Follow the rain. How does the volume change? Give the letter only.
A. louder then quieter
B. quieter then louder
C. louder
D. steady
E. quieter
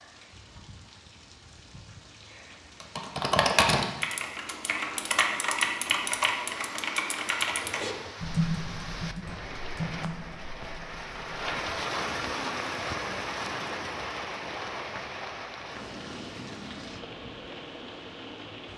A.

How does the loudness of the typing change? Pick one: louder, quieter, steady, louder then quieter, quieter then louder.
quieter.